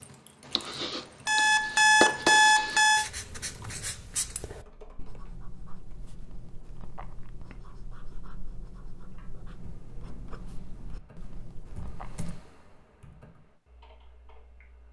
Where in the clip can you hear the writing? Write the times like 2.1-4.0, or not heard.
0.5-12.3.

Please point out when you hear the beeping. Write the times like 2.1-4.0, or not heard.
1.2-3.0.